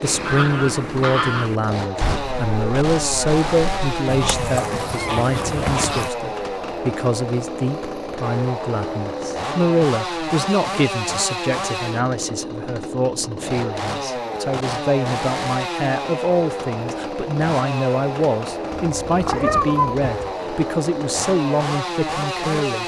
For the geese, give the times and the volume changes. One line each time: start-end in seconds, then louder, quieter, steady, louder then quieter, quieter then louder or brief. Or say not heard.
0.0-6.1 quieter then louder.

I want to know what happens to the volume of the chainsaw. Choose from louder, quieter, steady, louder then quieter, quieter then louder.
steady.